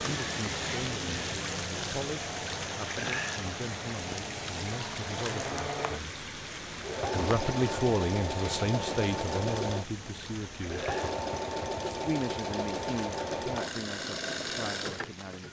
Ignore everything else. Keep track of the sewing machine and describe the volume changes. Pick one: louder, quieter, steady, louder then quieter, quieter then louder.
louder.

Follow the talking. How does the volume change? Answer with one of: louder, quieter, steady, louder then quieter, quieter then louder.
louder then quieter.